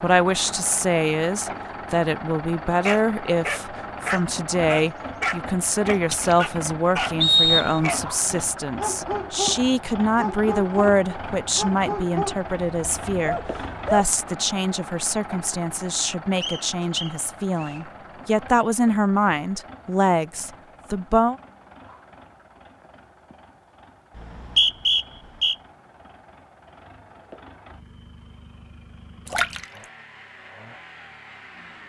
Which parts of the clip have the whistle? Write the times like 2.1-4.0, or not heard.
7.2-7.8, 16.4-17.8, 24.1-25.6.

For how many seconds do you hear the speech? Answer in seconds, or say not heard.
21 s.